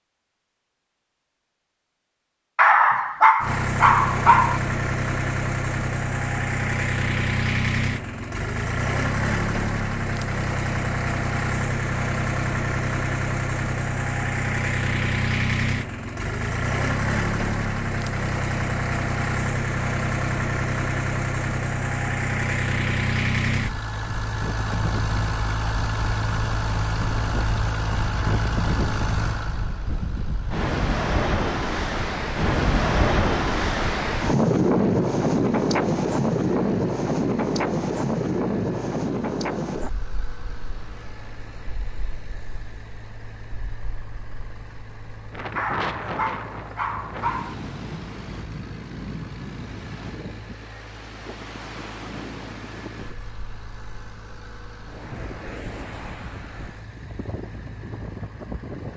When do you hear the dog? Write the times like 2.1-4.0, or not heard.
2.5-4.6, 45.5-47.5.